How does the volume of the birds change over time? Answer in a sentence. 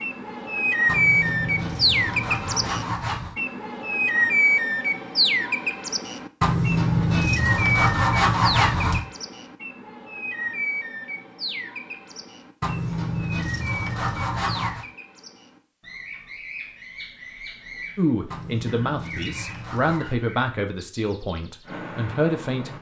The volume of the birds goes down.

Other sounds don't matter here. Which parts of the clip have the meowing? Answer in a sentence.
The meowing can't be heard in this clip.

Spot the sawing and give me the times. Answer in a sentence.
The sawing can be heard from 0.8 to 3.4 s, from 6.4 to 9.0 s, from 12.6 to 14.8 s and from 18.3 to 20.1 s.